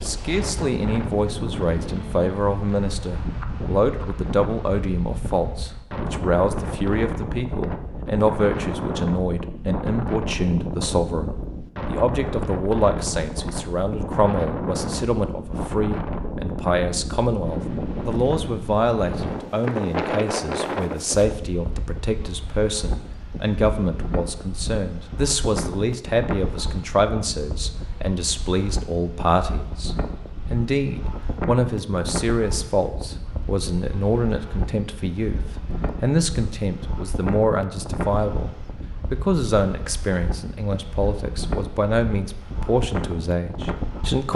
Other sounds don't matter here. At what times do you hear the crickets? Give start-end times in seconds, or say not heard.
not heard.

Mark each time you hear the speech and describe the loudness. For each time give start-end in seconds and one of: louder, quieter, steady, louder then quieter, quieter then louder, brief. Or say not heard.
0.0-44.3 steady.